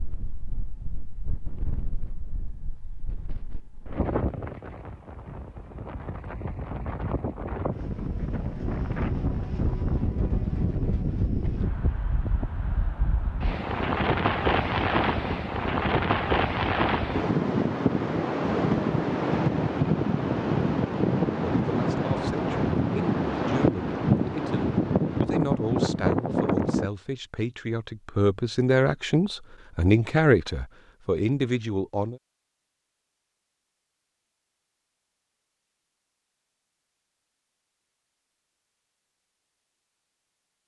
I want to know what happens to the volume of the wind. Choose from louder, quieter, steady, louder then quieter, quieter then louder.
louder.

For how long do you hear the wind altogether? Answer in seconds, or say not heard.
27 s.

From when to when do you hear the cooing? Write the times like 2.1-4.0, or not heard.
not heard.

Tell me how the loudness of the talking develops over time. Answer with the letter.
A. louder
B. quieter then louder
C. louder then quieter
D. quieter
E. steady
A.